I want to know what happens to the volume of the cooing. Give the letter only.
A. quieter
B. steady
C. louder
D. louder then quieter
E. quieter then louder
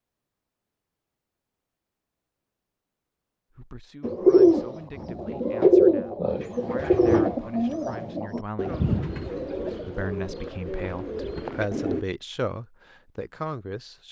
A.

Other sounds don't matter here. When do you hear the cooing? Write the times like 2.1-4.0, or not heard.
4.0-12.1.